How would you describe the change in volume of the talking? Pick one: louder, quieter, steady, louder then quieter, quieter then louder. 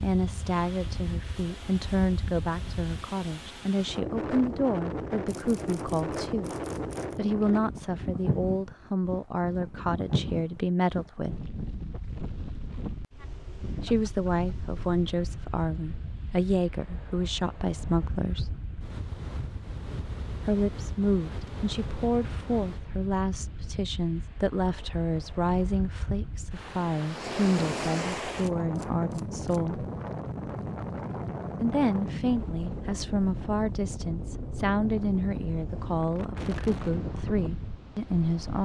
steady.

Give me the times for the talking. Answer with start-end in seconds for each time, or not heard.
0.0-6.5, 7.2-11.3, 13.8-18.6, 20.4-29.9, 31.6-38.6.